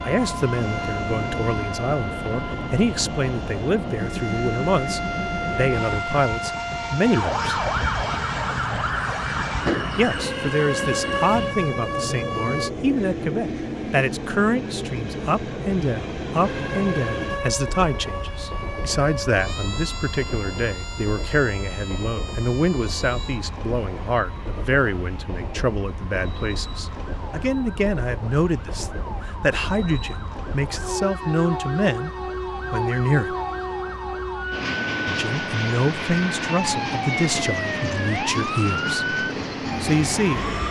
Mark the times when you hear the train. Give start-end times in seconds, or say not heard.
0.0-40.6.